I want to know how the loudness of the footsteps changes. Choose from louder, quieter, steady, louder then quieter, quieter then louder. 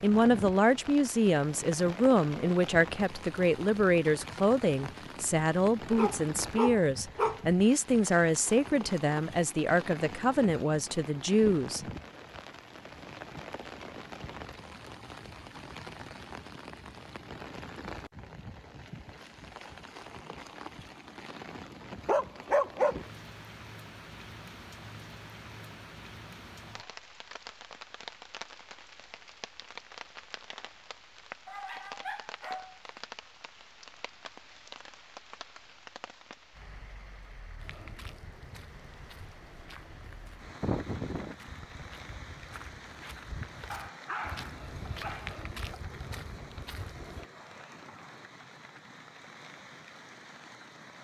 louder.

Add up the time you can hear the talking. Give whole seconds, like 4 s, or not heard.
12 s.